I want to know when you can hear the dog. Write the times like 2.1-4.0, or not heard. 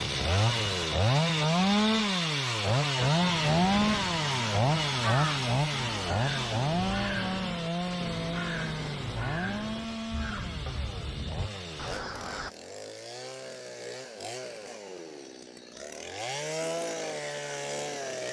not heard.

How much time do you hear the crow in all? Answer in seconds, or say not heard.
9 s.